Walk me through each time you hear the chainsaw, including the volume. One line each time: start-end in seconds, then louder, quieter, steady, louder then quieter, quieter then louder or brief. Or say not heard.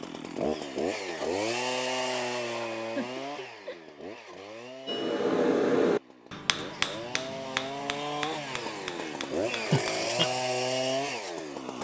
0.0-11.8 quieter then louder.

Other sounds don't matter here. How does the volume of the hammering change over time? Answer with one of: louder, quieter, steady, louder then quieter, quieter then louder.
quieter.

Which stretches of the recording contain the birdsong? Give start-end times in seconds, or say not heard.
not heard.